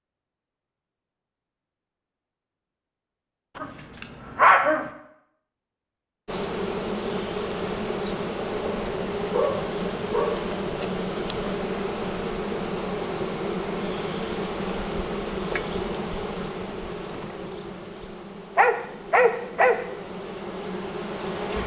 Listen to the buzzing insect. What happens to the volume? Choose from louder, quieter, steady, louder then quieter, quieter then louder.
quieter.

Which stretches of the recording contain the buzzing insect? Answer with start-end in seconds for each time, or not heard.
6.2-21.6.